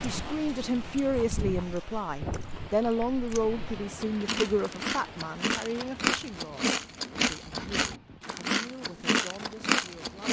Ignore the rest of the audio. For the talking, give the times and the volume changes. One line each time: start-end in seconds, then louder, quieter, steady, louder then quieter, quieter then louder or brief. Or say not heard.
0.0-10.2 quieter.